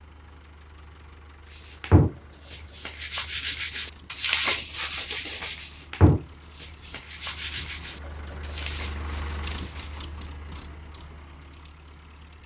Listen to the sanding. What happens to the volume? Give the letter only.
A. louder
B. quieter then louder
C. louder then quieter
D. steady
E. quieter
E.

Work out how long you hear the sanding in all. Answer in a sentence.
The sanding can be heard for 8 seconds in total.